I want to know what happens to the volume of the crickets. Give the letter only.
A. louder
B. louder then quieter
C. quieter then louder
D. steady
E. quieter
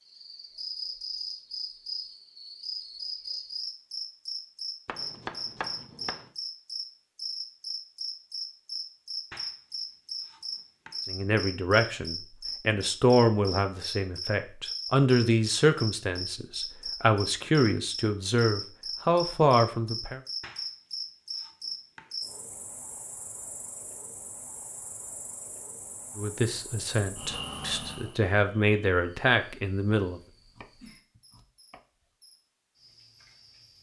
E.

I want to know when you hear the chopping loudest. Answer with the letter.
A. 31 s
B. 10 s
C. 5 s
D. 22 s
C.